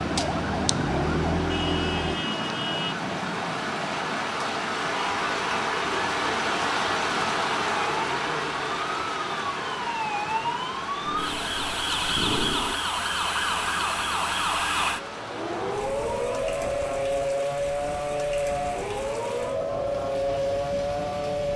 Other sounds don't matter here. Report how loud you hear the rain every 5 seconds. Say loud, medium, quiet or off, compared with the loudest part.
medium, loud, medium, quiet, quiet.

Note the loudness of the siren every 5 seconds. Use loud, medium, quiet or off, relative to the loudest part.
loud, medium, loud, loud, loud.